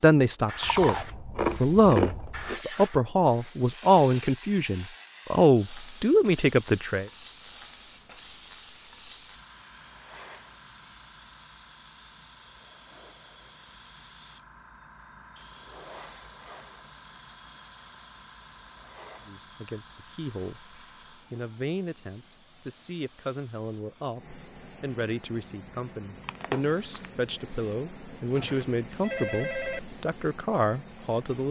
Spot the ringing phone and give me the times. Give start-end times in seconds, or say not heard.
28.4-29.8.